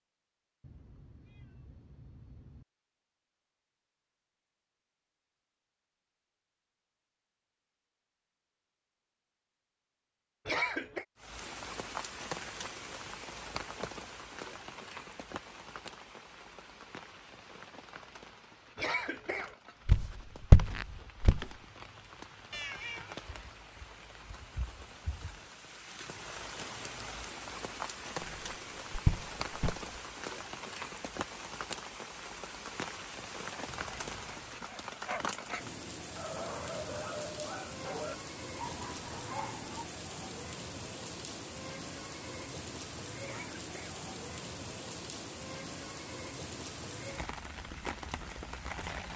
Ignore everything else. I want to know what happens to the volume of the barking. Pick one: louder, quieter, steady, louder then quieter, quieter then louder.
steady.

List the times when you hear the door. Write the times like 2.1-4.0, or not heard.
not heard.